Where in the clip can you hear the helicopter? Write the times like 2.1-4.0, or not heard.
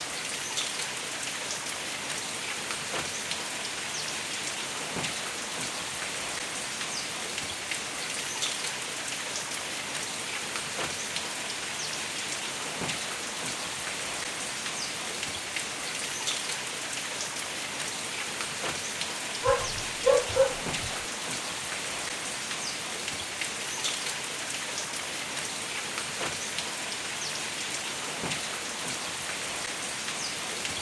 not heard.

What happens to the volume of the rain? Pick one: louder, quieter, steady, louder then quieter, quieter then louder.
steady.